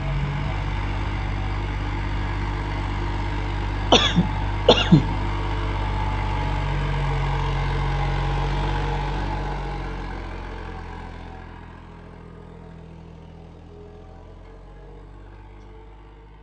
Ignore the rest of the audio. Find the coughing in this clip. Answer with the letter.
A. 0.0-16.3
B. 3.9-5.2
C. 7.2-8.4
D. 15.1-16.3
B.